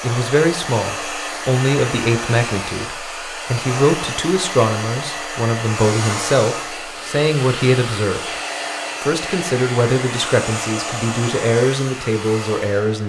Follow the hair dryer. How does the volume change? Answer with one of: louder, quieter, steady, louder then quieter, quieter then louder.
steady.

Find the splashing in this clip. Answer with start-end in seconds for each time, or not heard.
not heard.